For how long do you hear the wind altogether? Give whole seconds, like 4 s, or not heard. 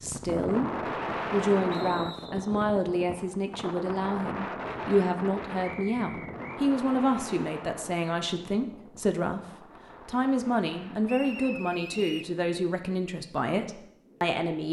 14 s.